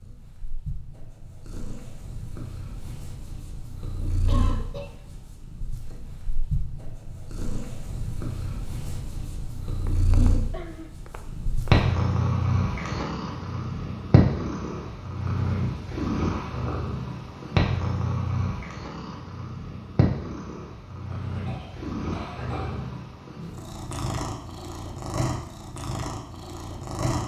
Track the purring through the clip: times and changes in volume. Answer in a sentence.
The purring can be heard from 0.0 to 27.2 s, getting louder then quieter.